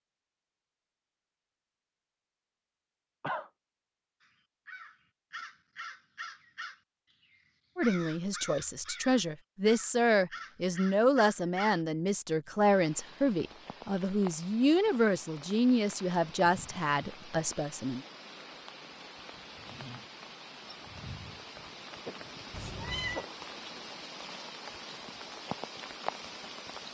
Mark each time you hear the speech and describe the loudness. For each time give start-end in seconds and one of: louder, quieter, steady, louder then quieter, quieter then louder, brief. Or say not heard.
7.8-18.0 steady.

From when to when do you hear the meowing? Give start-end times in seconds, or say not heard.
22.5-23.2.